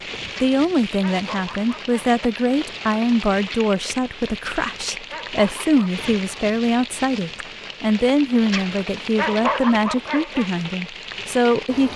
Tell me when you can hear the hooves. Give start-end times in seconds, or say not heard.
not heard.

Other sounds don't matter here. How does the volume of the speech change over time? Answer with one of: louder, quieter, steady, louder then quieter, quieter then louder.
steady.